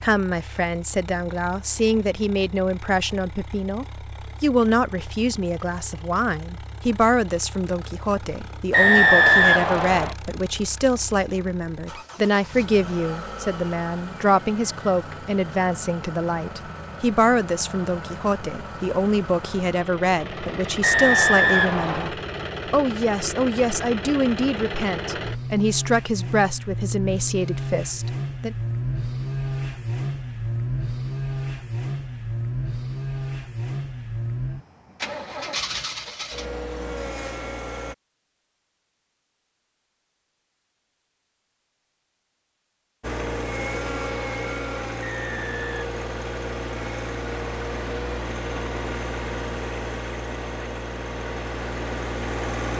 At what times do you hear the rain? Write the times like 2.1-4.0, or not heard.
not heard.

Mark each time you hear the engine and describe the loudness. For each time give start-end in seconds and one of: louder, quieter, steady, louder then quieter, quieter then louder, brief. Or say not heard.
0.0-38.0 louder
43.0-52.7 steady.